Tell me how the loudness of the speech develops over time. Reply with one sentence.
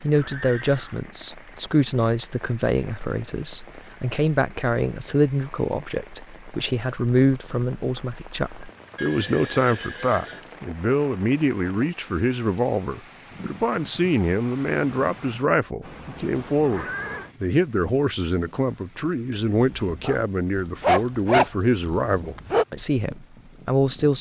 The volume of the speech stays about the same.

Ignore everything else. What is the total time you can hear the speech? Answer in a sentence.
The speech can be heard for 24 seconds in total.